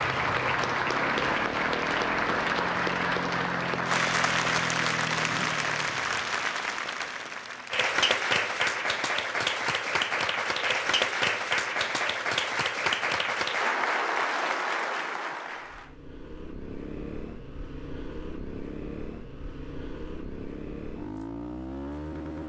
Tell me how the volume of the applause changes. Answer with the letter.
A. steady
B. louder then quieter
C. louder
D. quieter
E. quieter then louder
A.